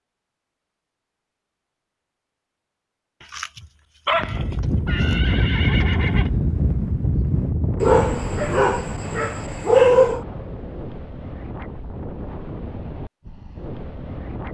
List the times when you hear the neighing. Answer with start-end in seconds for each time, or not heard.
4.6-6.3.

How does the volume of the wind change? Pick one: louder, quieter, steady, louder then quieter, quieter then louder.
quieter.